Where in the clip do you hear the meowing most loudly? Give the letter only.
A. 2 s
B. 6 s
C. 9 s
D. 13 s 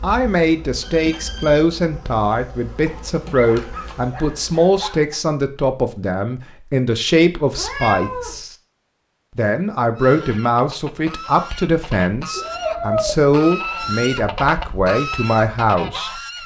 D.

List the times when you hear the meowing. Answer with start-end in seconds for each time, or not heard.
0.8-1.6, 7.5-8.4, 12.3-14.1.